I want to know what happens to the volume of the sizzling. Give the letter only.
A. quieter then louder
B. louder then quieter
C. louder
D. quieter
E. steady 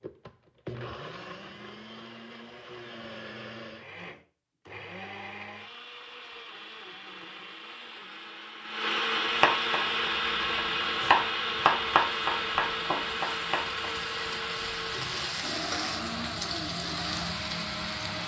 C.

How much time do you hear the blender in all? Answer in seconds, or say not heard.
18 s.